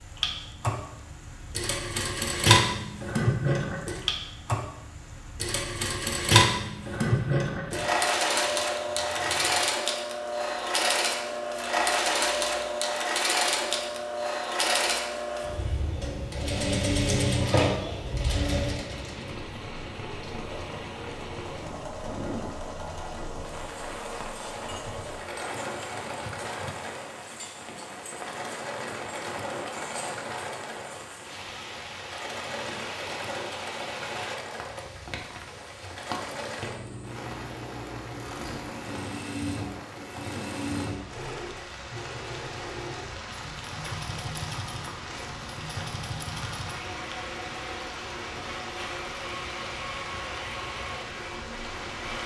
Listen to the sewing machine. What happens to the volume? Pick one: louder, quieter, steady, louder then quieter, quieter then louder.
quieter.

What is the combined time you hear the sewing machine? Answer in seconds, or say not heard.
52 s.